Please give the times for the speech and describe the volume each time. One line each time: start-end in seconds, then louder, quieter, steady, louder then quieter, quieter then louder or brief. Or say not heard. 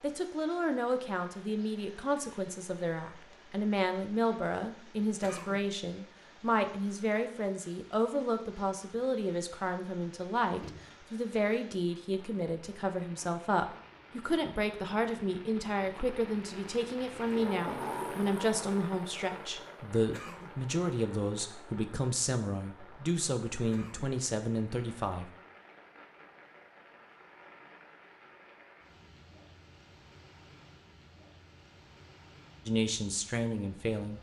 0.0-25.3 steady
32.6-34.1 brief.